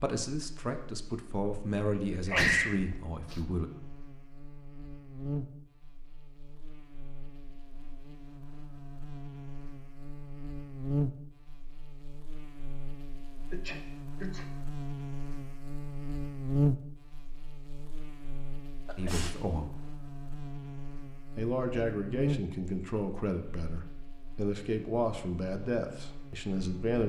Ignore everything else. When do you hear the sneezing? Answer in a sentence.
You can hear the sneezing from 2.1 to 3.4 s, from 13.5 to 14.4 s and from 18.9 to 19.4 s.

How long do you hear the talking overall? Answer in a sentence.
You can hear the talking for 10 seconds altogether.